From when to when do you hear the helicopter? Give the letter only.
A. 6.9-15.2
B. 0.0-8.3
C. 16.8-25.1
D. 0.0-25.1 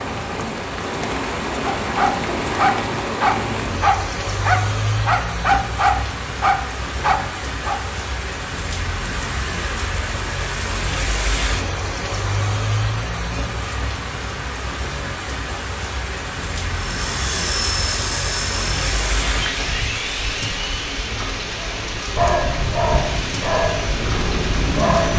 C.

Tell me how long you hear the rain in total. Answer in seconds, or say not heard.
25 s.